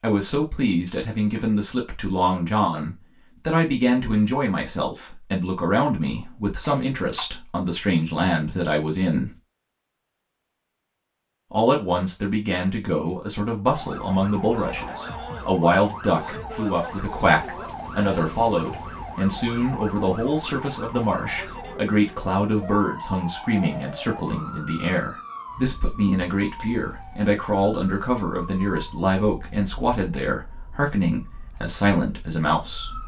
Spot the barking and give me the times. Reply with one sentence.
You can't hear the barking here.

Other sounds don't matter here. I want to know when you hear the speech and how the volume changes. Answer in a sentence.
The speech can be heard from 0.0 to 9.3 s, at a steady volume; and from 11.5 to 33.0 s, at a steady volume.